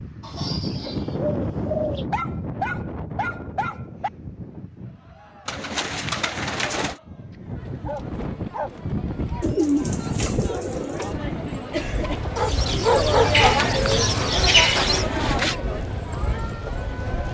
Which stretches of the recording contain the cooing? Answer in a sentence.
The cooing can be heard from 0.2 to 2.1 s, from 5.5 to 7.0 s, from 9.4 to 11.2 s and from 13.3 to 15.6 s.